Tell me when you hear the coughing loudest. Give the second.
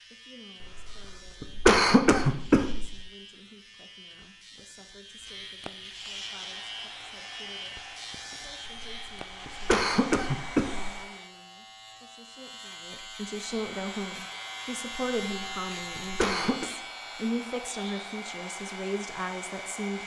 2 s.